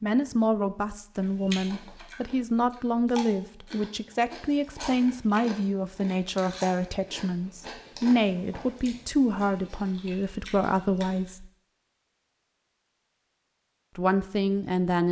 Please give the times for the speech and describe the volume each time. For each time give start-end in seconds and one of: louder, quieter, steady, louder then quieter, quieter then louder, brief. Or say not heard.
0.0-11.4 steady
13.9-15.0 brief.